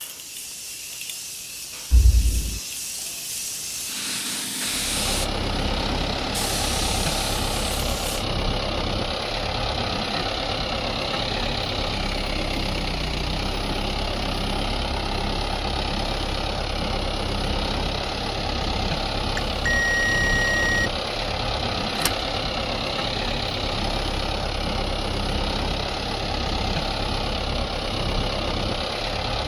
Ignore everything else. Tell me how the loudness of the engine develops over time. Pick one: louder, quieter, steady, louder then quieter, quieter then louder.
steady.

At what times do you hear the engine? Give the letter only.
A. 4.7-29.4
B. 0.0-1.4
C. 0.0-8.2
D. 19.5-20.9
A.